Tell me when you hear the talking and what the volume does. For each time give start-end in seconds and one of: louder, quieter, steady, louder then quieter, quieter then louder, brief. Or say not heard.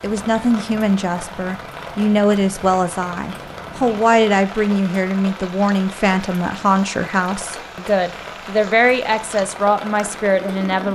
0.0-10.9 steady.